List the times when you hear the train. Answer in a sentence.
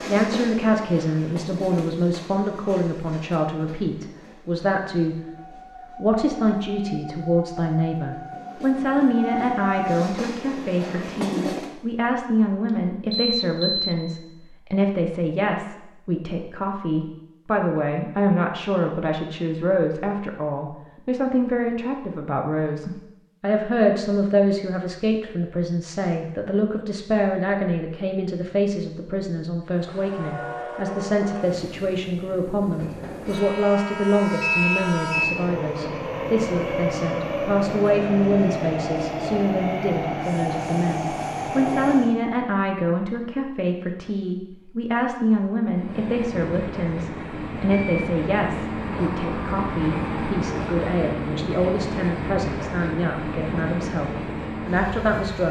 You can hear the train from 0.0 to 11.7 s, from 29.7 to 42.1 s and from 45.7 to 55.4 s.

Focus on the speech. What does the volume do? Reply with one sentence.
The volume of the speech stays about the same.